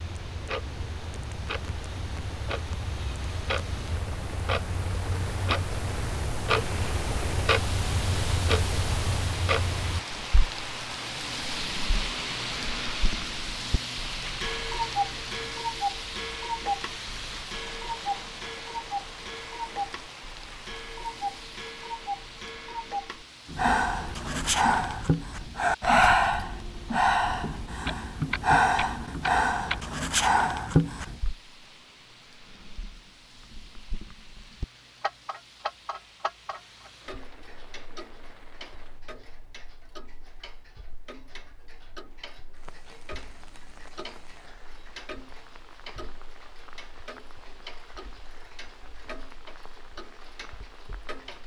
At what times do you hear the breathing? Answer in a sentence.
The breathing can be heard from 23.5 to 31.2 s.